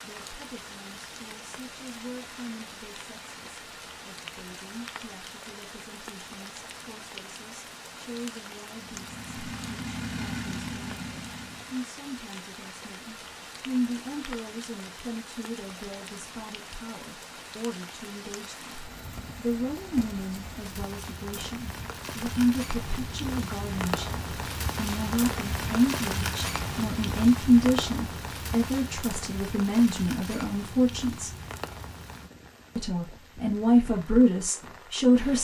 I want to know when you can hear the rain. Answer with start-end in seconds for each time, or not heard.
0.0-35.3.